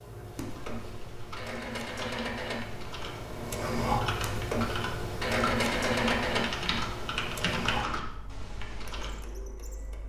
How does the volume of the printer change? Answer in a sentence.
The loudness of the printer goes up, then down.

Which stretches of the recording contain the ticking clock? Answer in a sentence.
You can't hear the ticking clock here.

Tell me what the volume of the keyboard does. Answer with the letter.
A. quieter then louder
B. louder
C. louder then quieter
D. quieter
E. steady
B.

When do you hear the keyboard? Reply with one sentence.
The keyboard can be heard from 0.2 to 9.2 s.